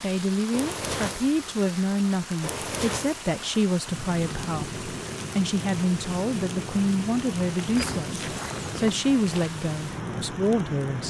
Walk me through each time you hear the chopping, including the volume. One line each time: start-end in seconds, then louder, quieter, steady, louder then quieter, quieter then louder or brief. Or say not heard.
not heard.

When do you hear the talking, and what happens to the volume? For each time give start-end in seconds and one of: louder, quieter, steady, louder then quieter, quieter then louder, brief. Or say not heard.
0.0-11.0 steady.